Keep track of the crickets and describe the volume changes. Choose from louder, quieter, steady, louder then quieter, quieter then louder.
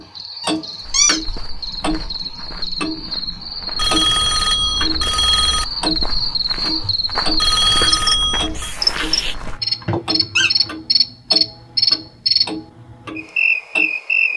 louder.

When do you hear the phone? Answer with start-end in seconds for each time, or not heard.
3.8-5.7, 7.3-8.8.